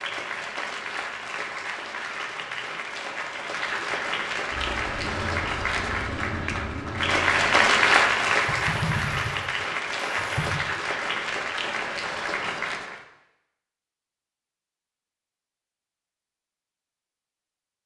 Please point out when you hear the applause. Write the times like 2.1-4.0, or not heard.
0.0-13.1.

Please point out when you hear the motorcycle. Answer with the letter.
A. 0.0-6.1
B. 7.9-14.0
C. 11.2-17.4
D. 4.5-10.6
D.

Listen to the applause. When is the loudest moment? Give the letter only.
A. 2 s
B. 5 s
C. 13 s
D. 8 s
D.